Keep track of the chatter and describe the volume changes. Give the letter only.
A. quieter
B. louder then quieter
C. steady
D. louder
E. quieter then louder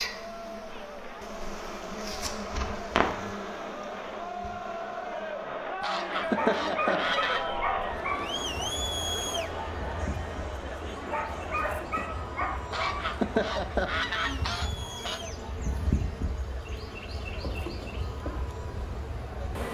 B.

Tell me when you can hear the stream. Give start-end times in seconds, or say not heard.
not heard.